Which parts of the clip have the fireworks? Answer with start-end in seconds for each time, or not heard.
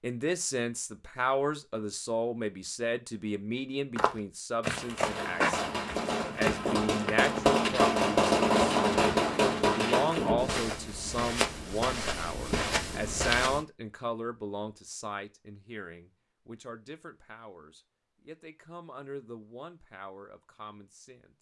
5.0-10.7.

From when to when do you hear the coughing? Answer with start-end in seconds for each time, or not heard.
not heard.